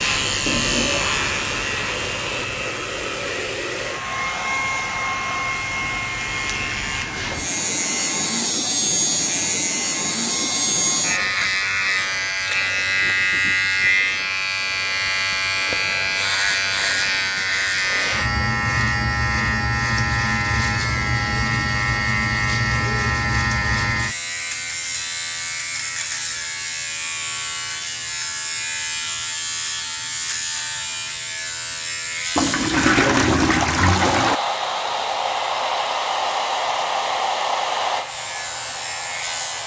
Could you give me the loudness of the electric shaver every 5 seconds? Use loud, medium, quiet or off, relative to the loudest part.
medium, loud, loud, loud, loud, medium, medium, medium.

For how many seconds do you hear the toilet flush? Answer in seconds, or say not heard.
4 s.